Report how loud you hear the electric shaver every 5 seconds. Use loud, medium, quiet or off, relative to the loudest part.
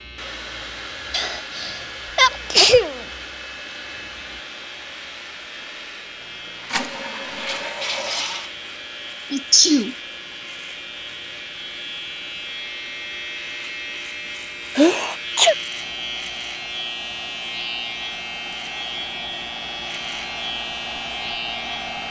medium, medium, loud, loud, loud.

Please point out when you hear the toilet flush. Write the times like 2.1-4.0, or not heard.
6.2-8.5.